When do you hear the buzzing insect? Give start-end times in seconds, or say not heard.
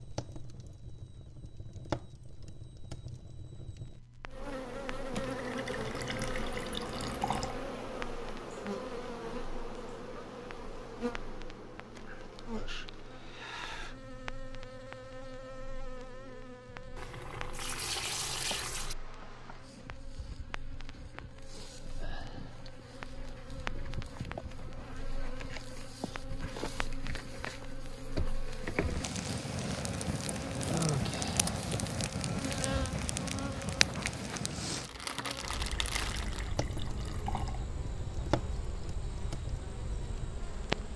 4.3-40.9.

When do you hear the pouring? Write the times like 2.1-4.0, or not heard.
5.1-7.5, 16.9-18.9, 35.1-37.6.